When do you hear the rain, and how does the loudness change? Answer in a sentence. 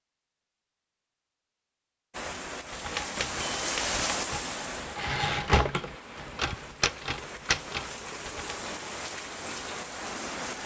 You can hear the rain from 2.1 to 10.6 s, getting quieter then louder.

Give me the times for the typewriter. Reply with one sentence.
You can hear the typewriter from 2.7 to 8.6 s.